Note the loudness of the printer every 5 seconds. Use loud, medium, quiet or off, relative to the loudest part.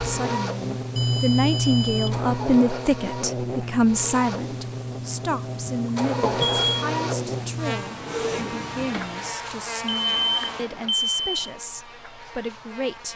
loud, loud, off.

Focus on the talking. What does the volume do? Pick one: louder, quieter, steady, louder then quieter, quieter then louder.
quieter.